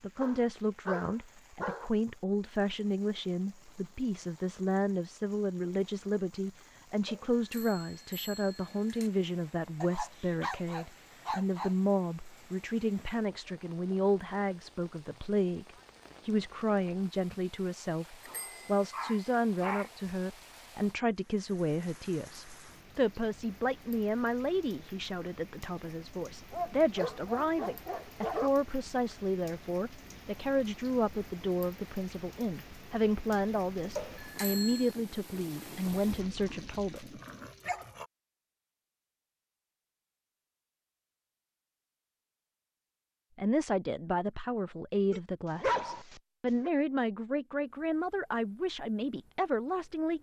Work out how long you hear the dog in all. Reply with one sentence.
You can hear the dog for 11 seconds altogether.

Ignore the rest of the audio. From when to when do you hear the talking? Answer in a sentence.
The talking can be heard from 0.0 to 37.2 s and from 43.4 to 50.1 s.